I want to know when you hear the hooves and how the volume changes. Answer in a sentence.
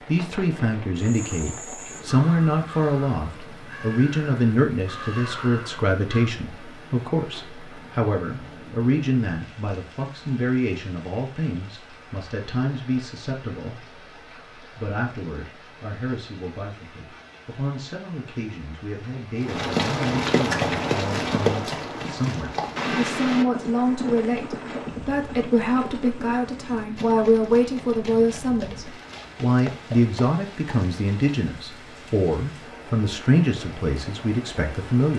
The hooves can be heard from 19.4 to 31.4 s, getting quieter.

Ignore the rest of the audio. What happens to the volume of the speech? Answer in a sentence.
The volume of the speech goes down, then up.